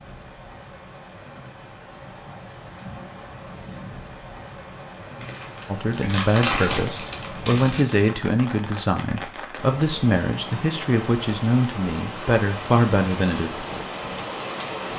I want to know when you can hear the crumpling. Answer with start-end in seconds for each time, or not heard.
5.2-7.8.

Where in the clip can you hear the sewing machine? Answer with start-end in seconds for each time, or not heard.
not heard.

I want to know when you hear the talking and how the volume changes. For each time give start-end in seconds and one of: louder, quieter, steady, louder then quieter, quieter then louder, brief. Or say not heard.
5.7-13.7 steady.